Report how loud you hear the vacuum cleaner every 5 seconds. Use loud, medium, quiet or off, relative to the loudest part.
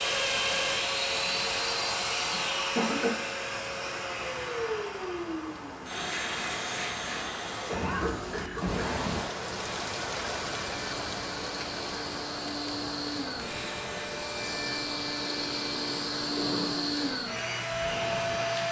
loud, medium, medium, loud.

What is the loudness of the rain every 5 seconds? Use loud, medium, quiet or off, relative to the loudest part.
medium, loud, loud, medium.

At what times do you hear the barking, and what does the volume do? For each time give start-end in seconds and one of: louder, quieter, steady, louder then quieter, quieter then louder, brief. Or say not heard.
not heard.